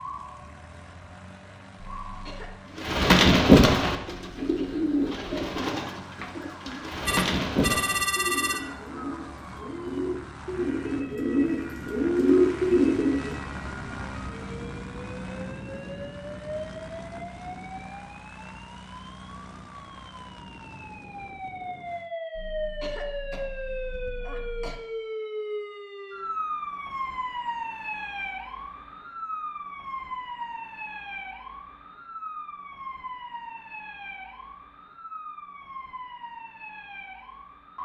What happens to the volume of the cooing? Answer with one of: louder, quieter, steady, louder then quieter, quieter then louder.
quieter then louder.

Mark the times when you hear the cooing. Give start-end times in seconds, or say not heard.
2.8-13.3.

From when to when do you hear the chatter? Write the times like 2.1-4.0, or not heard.
not heard.